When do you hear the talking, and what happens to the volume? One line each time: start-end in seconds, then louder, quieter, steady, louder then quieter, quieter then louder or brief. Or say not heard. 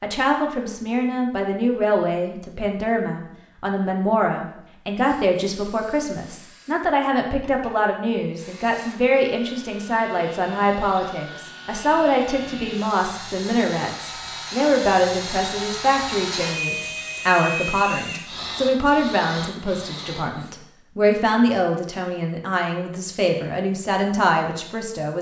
0.0-25.1 steady.